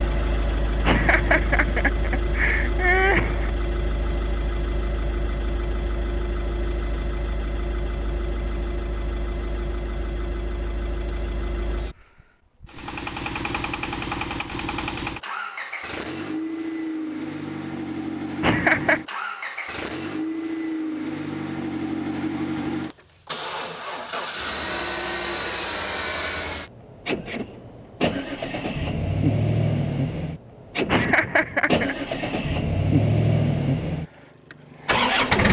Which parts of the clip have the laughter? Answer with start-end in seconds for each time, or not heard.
0.8-3.5, 18.4-19.0, 30.9-31.9.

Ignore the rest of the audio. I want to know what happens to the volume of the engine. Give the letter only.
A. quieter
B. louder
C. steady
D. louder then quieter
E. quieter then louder
B.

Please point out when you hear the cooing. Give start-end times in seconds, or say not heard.
not heard.